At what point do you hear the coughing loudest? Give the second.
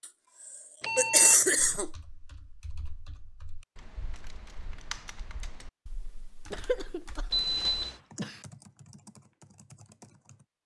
1 s.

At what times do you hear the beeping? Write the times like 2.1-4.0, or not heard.
0.8-1.8, 7.3-8.0.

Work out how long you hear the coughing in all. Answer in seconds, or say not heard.
3 s.